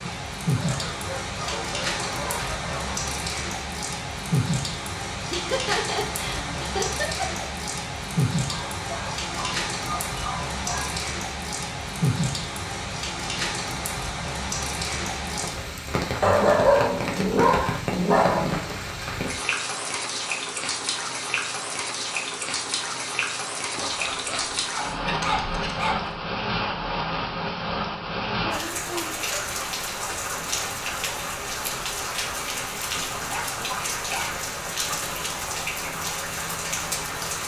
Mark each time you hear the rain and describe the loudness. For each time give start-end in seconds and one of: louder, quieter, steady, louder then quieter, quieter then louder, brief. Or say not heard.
0.0-37.4 steady.